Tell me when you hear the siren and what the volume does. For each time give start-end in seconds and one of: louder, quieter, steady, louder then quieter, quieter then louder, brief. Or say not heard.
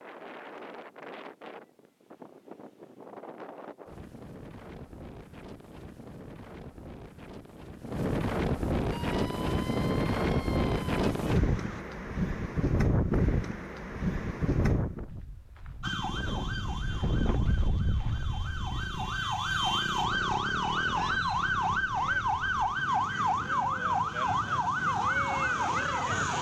8.9-11.8 brief
15.8-26.3 louder.